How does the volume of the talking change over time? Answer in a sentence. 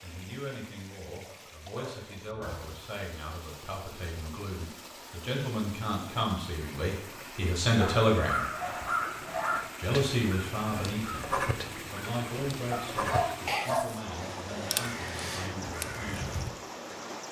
The loudness of the talking goes up, then down.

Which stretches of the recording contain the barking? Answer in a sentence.
The barking can be heard from 1.2 to 2.9 s, from 7.8 to 9.7 s and from 12.7 to 14.1 s.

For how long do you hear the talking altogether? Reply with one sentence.
You can hear the talking for 15 seconds altogether.